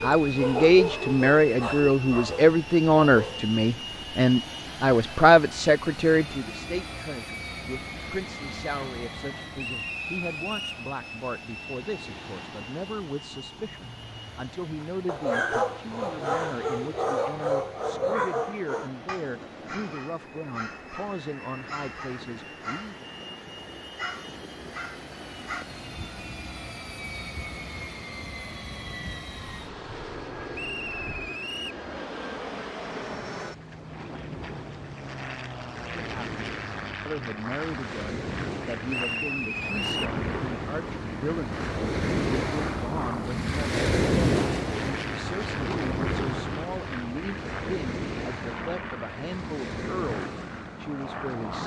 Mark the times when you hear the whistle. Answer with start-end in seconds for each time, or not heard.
9.6-10.8, 30.5-31.8, 38.9-40.1.